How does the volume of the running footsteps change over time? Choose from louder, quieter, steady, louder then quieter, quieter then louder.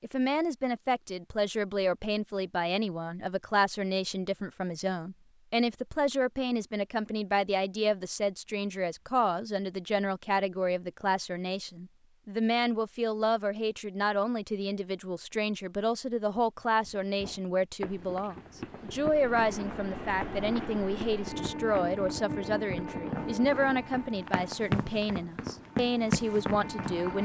louder.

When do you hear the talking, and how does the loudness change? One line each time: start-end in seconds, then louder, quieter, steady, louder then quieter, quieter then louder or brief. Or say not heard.
0.0-27.1 steady.